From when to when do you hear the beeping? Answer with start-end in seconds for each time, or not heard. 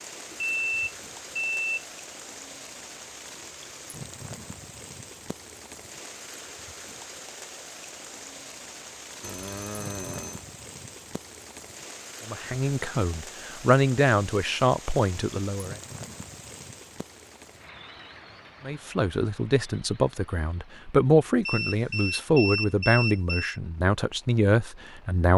0.3-1.9, 9.2-10.4, 21.4-23.6.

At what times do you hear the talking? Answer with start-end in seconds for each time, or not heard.
12.2-15.8, 18.6-25.3.